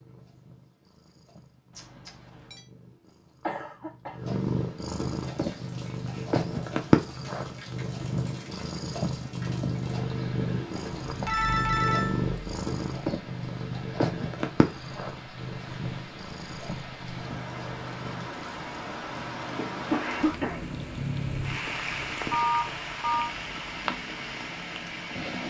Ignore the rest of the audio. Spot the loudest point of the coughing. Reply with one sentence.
The volume of the coughing peaks at 20 seconds.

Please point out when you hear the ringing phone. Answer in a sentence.
You can hear the ringing phone from 1.8 to 2.6 s, from 10.8 to 12.3 s and from 22.3 to 23.3 s.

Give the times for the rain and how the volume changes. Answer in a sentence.
You can hear the rain from 5.1 to 25.4 s, getting louder.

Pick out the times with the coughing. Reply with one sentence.
You can hear the coughing from 3.4 to 4.2 s and from 19.6 to 20.6 s.